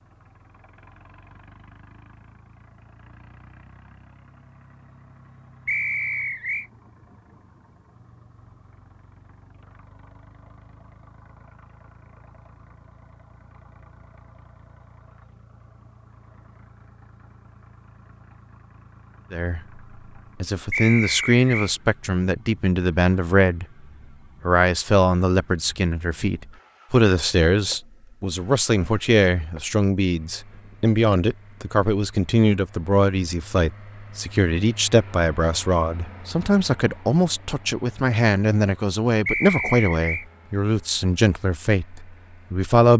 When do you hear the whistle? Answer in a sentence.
The whistle can be heard from 5.7 to 6.7 s, from 20.7 to 21.7 s and from 39.2 to 40.2 s.